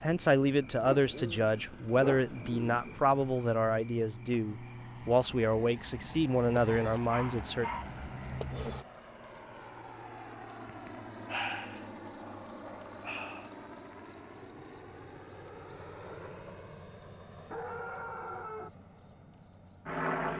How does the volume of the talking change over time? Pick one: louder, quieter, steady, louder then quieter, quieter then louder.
steady.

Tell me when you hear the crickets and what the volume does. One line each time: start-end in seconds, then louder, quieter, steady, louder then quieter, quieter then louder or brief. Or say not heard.
0.0-20.3 louder then quieter.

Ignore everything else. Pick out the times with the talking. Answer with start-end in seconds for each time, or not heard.
0.0-7.7.